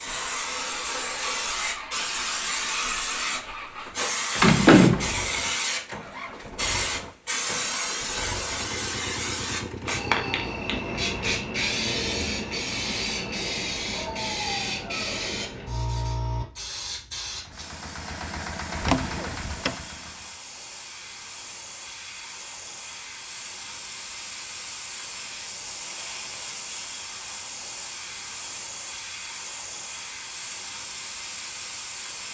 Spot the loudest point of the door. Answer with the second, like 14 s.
5 s.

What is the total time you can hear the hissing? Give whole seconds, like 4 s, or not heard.
32 s.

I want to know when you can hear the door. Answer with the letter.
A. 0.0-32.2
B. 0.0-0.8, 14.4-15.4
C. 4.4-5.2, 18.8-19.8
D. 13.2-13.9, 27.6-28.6
C.